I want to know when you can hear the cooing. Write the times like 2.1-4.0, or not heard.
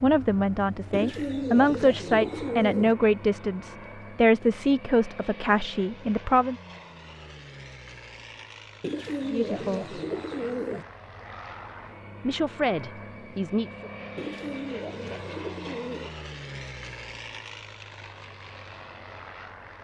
0.9-3.0, 8.8-10.8, 14.2-16.1.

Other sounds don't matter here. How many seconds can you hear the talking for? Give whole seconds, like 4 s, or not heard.
9 s.